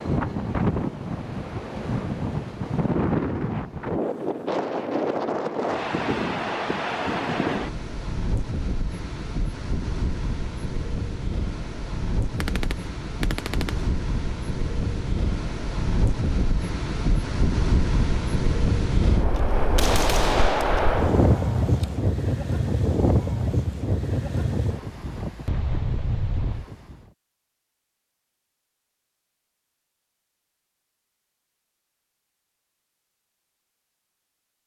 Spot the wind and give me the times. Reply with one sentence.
The wind can be heard from 0.0 to 27.1 s.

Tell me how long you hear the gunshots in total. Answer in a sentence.
You can hear the gunshots for 4 seconds altogether.